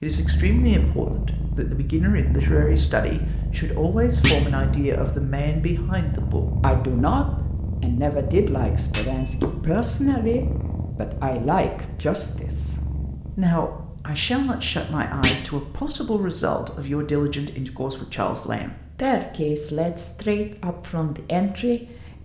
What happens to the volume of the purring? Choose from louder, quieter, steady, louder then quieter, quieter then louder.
quieter.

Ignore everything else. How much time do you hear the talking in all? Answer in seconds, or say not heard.
22 s.